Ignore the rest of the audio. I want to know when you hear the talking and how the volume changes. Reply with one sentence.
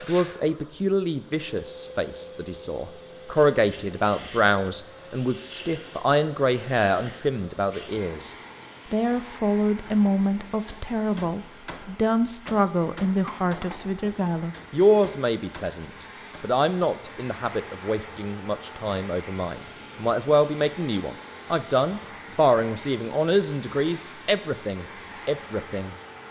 You can hear the talking from 0.1 to 25.9 s, at a steady volume.